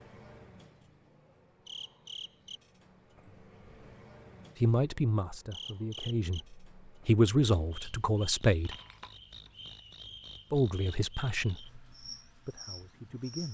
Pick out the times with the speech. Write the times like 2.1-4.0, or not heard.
4.6-8.8, 10.5-13.5.